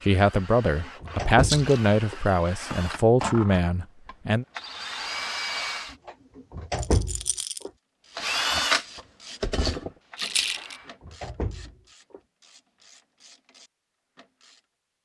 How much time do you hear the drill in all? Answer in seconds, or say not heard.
9 s.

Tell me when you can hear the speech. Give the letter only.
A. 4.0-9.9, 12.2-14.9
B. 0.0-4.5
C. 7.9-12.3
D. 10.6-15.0
B.